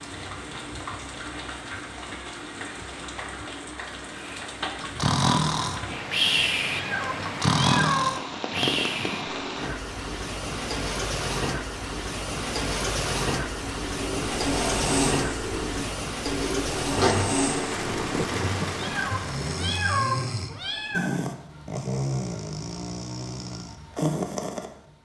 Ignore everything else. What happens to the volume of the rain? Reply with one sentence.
The volume of the rain goes up.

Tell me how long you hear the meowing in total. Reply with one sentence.
You can hear the meowing for 4 seconds altogether.